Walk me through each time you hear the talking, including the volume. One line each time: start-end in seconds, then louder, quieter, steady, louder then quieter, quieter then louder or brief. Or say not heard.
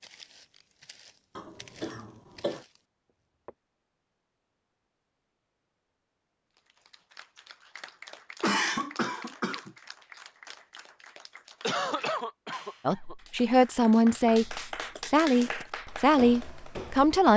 12.8-17.3 steady.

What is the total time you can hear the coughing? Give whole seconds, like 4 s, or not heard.
4 s.